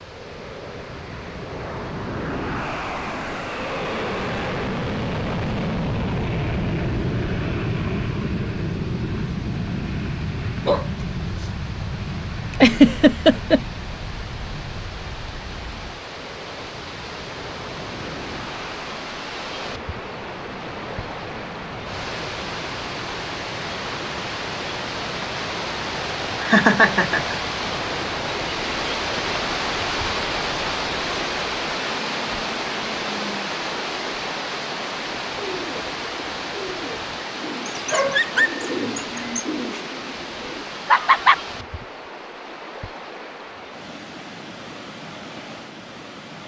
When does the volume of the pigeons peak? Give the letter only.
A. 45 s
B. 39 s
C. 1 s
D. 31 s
B.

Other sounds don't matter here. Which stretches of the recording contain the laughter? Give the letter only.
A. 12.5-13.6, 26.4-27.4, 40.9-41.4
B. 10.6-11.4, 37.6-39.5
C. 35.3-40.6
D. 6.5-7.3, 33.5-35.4
A.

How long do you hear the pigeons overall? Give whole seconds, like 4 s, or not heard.
5 s.